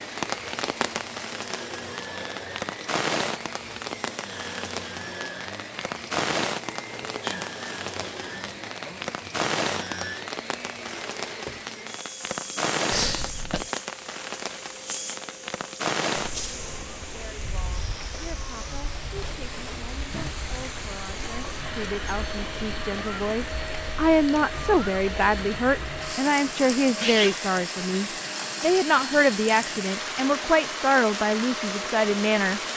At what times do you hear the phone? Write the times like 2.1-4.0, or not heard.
not heard.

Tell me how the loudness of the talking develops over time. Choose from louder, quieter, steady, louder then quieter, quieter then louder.
louder.